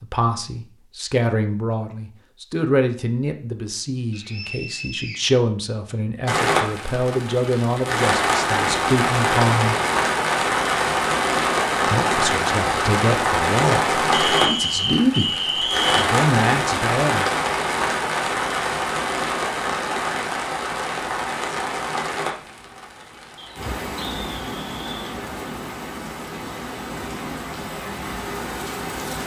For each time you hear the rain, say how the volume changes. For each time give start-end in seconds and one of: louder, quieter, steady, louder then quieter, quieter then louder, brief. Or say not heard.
6.2-29.2 quieter.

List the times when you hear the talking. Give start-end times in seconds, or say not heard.
0.0-9.8, 11.8-15.3, 15.9-17.2.